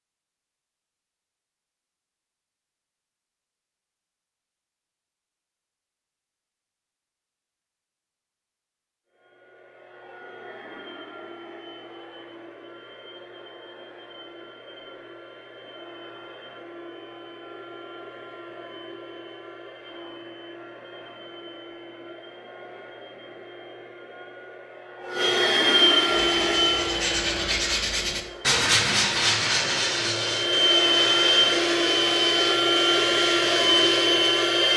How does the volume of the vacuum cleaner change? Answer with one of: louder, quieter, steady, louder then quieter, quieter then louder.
louder.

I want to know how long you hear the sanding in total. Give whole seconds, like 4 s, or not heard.
8 s.